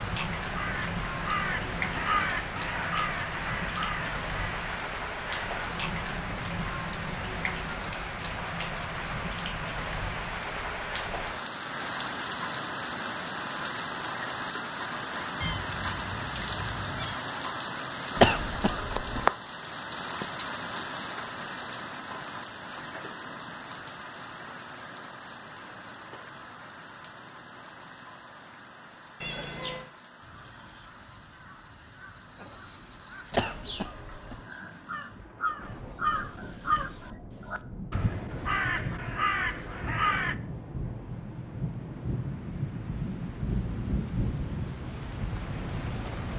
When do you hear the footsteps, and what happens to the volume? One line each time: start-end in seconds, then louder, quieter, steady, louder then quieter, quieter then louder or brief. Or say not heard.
not heard.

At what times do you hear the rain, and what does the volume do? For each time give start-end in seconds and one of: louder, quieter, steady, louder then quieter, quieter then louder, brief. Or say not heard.
0.0-46.3 quieter then louder.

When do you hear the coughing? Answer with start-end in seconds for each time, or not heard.
18.1-19.2, 33.3-34.4.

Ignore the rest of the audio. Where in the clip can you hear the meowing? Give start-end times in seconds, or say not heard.
15.4-17.2, 29.2-29.9.